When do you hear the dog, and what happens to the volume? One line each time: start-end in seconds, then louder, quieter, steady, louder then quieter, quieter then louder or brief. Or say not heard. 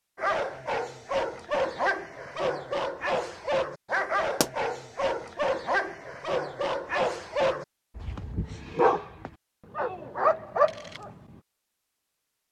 0.1-11.4 steady.